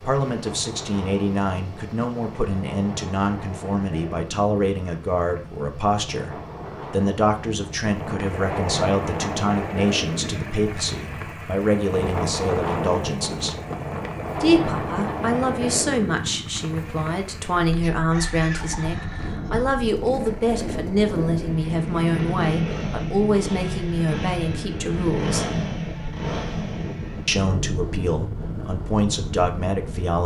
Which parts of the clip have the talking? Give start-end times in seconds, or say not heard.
0.0-13.6, 14.3-25.4, 27.2-30.2.